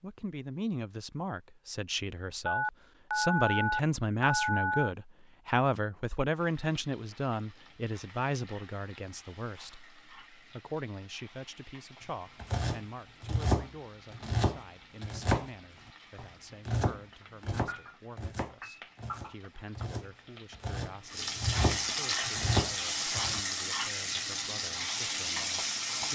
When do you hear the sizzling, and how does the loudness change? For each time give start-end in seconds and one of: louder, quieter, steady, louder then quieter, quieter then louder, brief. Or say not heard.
6.3-26.1 louder.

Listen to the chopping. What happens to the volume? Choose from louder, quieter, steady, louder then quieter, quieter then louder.
quieter then louder.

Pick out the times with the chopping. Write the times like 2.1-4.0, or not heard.
12.4-15.5, 16.1-23.4.